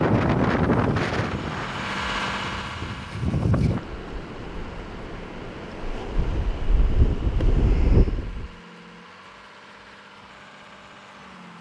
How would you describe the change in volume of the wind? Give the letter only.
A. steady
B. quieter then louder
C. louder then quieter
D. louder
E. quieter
B.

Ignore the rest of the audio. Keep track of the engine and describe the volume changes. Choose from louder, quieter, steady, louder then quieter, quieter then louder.
quieter.